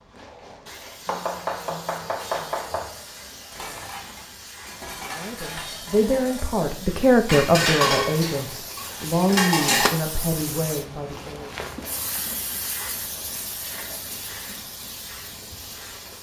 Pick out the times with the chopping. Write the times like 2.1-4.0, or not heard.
1.1-2.9.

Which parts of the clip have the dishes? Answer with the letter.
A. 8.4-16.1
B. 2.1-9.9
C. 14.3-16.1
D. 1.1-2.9
B.